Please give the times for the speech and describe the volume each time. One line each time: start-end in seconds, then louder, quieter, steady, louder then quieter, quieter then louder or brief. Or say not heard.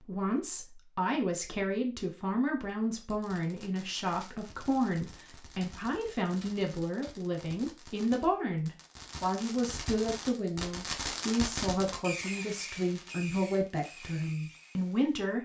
0.0-15.4 steady.